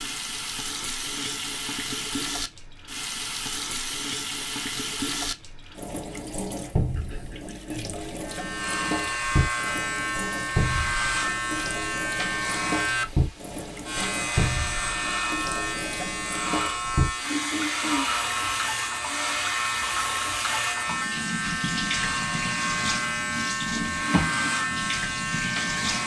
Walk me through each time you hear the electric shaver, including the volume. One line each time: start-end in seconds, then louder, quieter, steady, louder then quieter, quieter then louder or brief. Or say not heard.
8.2-26.0 steady.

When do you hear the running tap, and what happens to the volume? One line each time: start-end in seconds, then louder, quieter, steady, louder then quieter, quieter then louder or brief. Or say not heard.
0.0-26.0 steady.